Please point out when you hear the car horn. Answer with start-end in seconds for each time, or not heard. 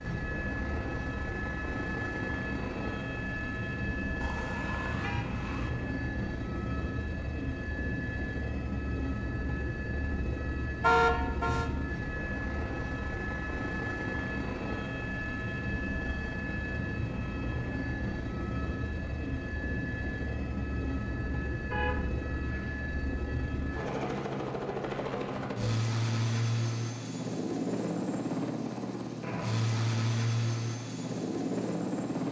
4.2-5.7, 10.8-11.7, 21.7-22.9.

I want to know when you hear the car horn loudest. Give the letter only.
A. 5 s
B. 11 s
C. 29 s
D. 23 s
B.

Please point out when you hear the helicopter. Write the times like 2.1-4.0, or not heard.
0.0-32.2.